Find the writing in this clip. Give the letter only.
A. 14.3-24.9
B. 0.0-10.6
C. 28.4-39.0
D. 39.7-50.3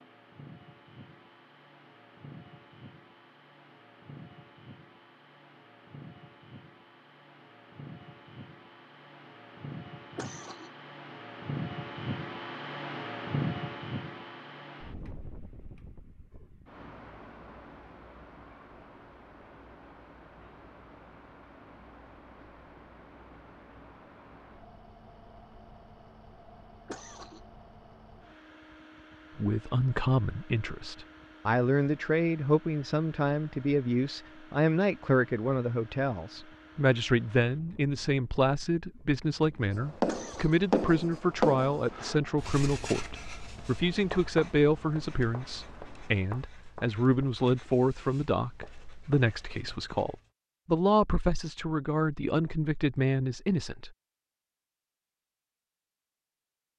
D.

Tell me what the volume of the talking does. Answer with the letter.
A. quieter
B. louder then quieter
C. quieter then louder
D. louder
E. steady
E.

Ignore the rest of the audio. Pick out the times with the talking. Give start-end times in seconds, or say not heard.
29.4-53.9.